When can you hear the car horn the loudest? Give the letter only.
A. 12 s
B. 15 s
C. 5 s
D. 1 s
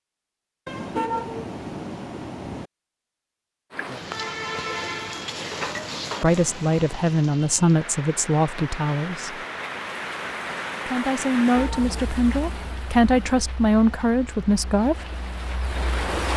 D.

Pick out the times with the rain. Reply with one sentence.
The rain can be heard from 3.7 to 16.3 s.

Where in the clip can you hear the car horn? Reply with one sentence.
You can hear the car horn from 0.7 to 2.7 s and from 11.2 to 12.8 s.